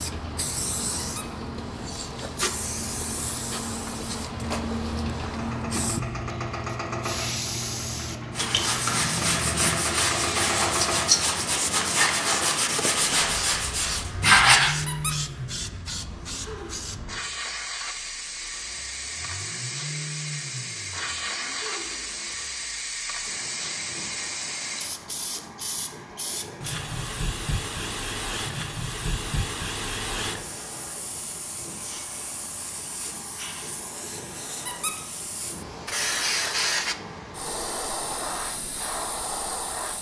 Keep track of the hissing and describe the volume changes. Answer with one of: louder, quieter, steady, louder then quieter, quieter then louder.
steady.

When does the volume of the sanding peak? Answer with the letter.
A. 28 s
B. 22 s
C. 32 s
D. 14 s
D.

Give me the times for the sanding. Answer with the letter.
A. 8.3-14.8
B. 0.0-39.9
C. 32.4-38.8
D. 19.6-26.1
A.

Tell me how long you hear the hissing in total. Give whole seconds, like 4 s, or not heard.
40 s.